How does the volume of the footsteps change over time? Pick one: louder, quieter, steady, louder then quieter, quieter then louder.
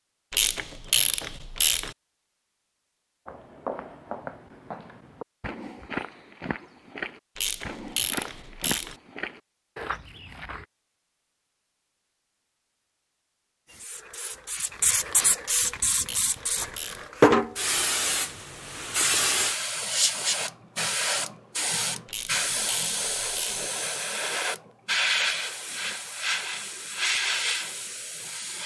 steady.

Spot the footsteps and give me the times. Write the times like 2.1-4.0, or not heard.
3.2-10.7.